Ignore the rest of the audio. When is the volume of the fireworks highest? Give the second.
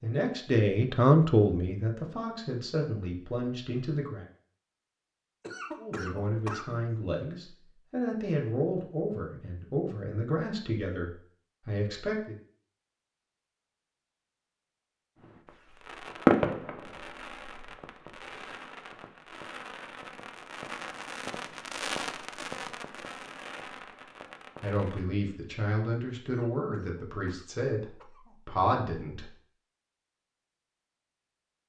16 s.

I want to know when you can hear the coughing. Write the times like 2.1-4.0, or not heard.
5.4-6.8, 26.2-28.4.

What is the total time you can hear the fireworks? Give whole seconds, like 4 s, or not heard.
10 s.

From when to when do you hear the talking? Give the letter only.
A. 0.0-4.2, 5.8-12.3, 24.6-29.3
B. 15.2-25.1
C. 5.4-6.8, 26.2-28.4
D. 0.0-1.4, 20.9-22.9
A.